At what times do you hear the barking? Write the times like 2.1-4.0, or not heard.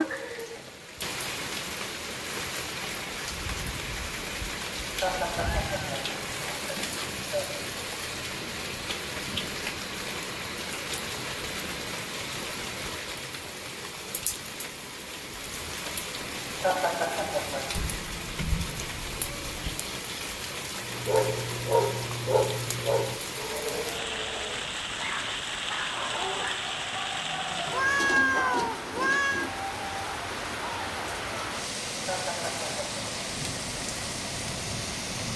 20.9-28.6.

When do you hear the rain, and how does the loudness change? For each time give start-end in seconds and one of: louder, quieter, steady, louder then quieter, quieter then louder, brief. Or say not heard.
0.0-35.3 steady.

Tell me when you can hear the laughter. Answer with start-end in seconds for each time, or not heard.
5.0-7.5, 16.6-17.6, 32.0-33.0.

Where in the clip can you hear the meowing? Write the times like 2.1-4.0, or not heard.
5.3-6.0, 17.8-19.8, 27.7-29.4.